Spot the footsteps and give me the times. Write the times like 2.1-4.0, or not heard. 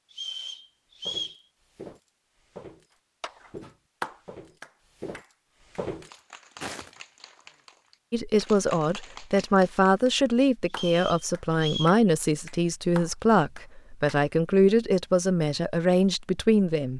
1.1-7.0.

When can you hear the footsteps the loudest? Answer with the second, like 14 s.
6 s.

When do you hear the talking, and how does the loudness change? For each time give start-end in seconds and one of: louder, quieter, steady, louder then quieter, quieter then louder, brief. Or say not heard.
8.1-16.9 steady.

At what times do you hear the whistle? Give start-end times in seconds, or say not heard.
0.1-1.4, 10.7-12.0.